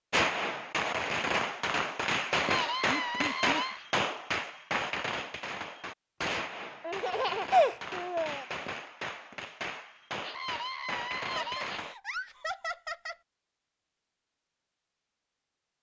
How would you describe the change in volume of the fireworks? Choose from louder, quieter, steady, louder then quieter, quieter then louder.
quieter.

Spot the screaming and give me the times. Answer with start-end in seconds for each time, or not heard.
2.4-3.9, 10.2-11.8.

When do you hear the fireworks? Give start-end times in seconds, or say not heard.
0.1-11.9.